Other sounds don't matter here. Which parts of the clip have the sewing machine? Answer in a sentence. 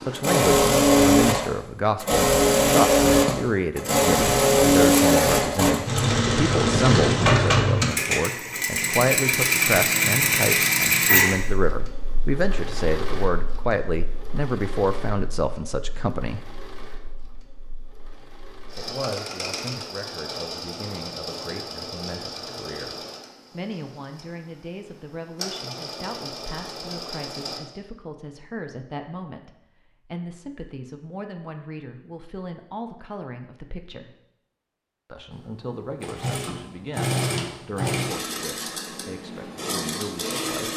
You can hear the sewing machine from 0.0 to 27.6 s and from 35.3 to 40.7 s.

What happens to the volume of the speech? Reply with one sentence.
The volume of the speech goes down.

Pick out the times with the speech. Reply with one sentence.
The speech can be heard from 0.1 to 16.4 s, from 18.8 to 34.1 s and from 35.1 to 40.7 s.